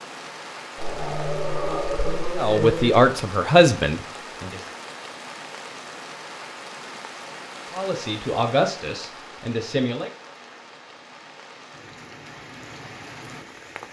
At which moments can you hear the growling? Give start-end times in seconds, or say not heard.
0.8-3.0.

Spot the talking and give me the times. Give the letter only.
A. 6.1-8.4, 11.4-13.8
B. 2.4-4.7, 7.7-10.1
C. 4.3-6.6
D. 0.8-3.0
B.